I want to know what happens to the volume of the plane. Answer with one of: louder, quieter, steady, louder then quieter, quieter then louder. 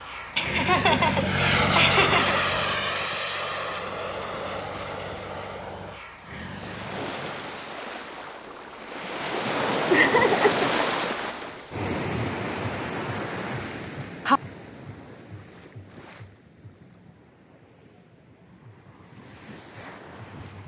quieter.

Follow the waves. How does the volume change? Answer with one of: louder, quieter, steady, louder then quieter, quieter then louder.
louder then quieter.